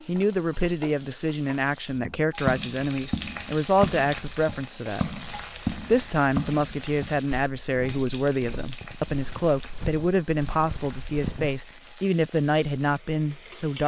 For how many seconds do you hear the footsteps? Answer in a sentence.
The footsteps can be heard for 10 seconds in total.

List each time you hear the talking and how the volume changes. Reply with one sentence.
The talking can be heard from 0.1 to 13.8 s, at a steady volume.